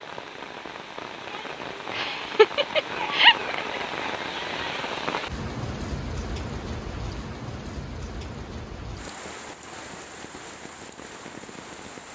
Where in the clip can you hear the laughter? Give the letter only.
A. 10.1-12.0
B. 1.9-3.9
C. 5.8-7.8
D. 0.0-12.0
B.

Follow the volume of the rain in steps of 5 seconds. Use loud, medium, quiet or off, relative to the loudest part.
loud, loud, medium.